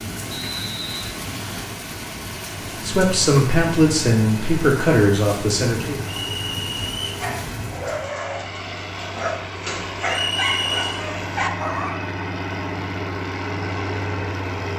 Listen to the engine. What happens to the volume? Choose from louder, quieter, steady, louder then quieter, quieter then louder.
louder.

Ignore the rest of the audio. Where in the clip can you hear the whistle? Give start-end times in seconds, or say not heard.
0.2-1.1, 6.2-7.1, 10.1-11.0.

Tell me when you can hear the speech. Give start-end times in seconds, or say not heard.
2.8-6.0.